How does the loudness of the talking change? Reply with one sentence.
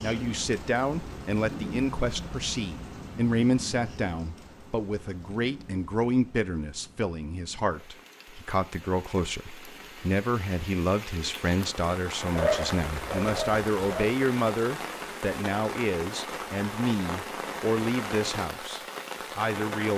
The loudness of the talking stays about the same.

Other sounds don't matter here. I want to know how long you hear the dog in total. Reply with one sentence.
The dog can be heard for 2 seconds in total.